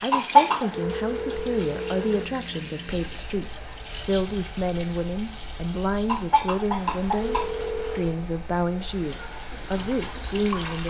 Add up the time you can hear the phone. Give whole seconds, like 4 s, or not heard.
3 s.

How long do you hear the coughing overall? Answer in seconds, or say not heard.
3 s.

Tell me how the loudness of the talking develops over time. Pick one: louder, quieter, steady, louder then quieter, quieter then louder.
steady.